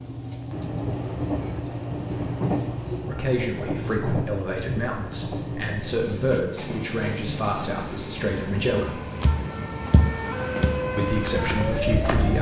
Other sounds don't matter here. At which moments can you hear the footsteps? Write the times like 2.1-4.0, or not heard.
9.2-12.3.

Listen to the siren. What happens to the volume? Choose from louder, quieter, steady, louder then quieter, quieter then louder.
louder.